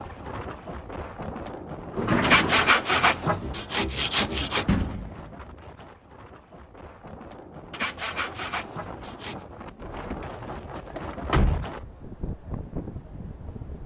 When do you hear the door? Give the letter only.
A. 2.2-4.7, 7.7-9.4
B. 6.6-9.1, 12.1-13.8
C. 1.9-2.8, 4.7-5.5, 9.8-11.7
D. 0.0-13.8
C.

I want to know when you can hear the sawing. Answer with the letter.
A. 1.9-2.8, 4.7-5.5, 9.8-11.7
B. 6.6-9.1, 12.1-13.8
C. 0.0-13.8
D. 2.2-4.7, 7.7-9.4
D.